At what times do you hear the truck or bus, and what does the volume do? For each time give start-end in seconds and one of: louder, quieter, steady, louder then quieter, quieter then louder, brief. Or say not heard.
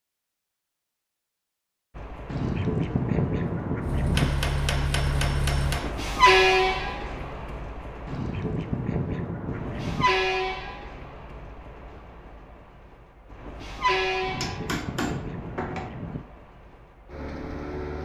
1.9-18.0 louder then quieter.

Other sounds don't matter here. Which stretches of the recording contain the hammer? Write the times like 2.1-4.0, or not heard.
4.2-6.0, 13.9-15.9.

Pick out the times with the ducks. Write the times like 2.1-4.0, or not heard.
2.2-4.3, 8.1-10.1, 14.2-16.2.